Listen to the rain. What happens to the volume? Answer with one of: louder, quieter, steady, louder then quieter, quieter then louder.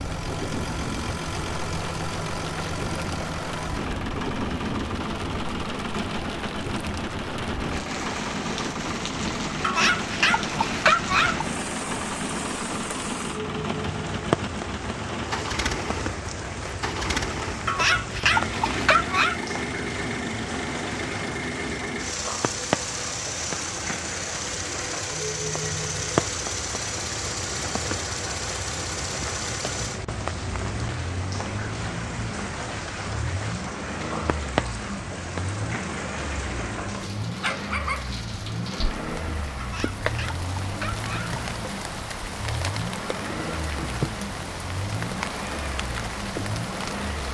steady.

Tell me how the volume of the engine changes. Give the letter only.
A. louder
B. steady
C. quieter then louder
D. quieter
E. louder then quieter
B.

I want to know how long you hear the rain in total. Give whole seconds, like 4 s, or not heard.
47 s.